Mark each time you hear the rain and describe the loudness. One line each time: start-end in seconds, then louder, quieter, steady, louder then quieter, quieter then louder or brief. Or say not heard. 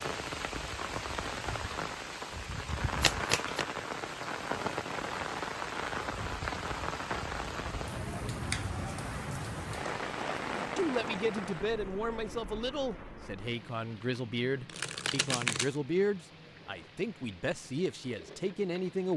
0.0-19.1 quieter.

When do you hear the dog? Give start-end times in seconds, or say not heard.
not heard.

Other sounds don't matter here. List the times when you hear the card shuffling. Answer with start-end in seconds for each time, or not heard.
3.0-3.6, 14.7-15.8.